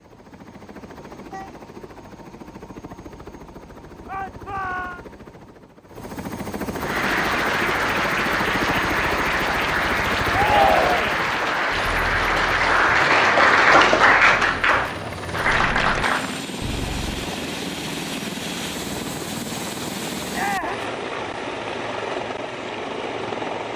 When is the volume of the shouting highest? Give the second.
11 s.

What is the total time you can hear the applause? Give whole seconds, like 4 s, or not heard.
10 s.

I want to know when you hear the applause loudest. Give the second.
14 s.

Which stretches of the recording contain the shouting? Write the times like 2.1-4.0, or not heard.
4.0-5.0, 10.3-11.2, 20.3-20.9.